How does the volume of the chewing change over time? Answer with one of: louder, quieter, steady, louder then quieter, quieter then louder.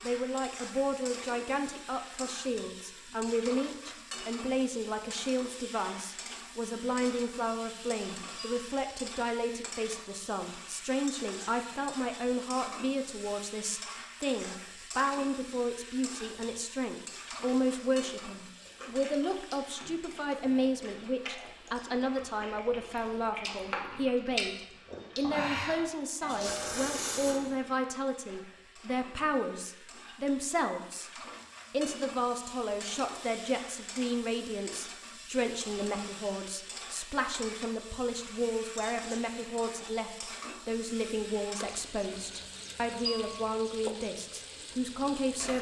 louder.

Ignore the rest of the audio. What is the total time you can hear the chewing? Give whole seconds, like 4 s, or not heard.
9 s.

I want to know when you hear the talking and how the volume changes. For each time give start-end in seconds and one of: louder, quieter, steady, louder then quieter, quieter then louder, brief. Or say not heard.
0.0-31.1 steady
31.7-45.5 steady.